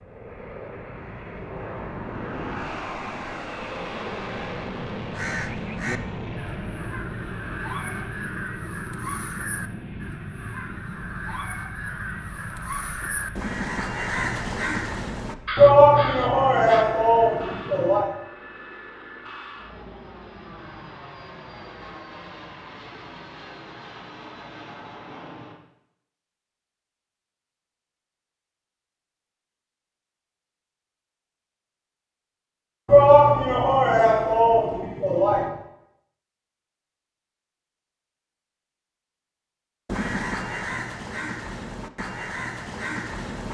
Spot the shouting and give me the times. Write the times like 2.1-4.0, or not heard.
15.6-18.1, 32.9-35.5.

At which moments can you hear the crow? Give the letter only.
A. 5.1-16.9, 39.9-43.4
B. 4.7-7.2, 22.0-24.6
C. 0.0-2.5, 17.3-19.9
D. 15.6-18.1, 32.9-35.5
A.